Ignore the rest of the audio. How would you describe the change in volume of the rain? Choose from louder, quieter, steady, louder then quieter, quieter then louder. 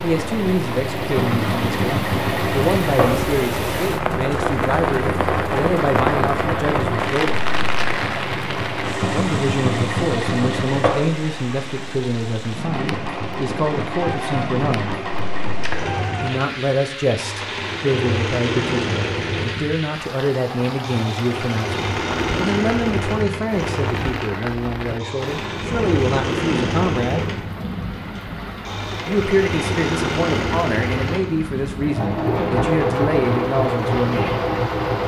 quieter.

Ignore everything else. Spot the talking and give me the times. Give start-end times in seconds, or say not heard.
0.0-7.5, 9.1-14.9, 16.2-27.2, 29.1-34.4.